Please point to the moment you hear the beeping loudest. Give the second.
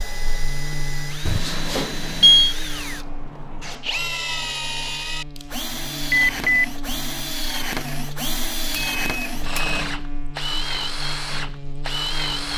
2 s.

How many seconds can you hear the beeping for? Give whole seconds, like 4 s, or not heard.
3 s.